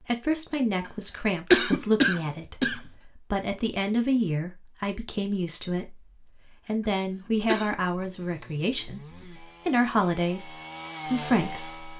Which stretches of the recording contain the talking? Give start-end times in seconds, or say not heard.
0.1-11.9.